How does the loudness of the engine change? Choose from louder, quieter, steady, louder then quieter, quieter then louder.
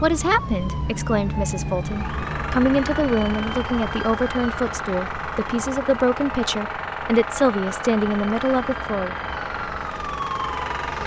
steady.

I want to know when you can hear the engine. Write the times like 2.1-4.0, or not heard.
1.8-11.0.